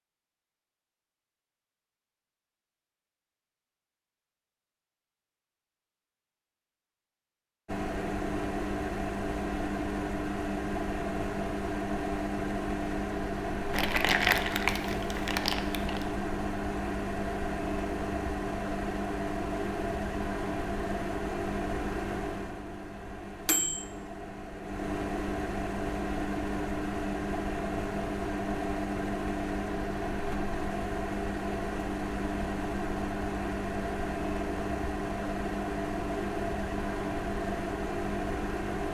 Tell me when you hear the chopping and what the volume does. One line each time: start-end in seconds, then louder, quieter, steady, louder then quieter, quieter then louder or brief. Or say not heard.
not heard.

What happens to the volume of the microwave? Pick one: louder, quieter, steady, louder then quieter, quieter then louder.
steady.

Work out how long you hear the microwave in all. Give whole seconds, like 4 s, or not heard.
31 s.